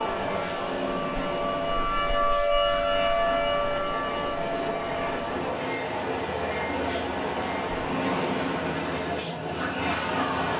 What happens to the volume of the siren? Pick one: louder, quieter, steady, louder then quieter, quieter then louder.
louder then quieter.